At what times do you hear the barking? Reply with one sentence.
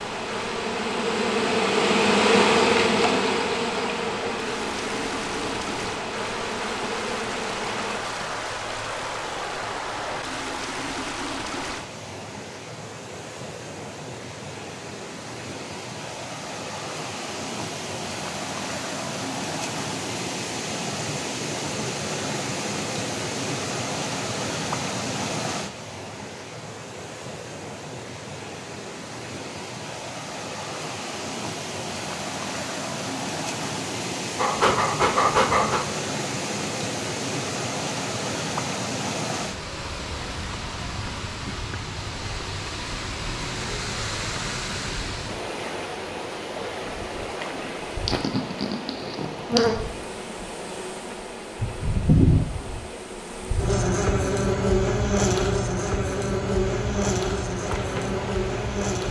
You can hear the barking from 34.4 to 35.9 s.